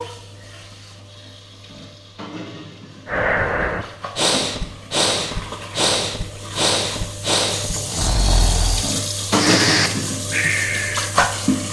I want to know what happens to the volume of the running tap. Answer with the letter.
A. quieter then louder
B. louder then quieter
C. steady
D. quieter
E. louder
E.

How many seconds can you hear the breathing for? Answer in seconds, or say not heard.
8 s.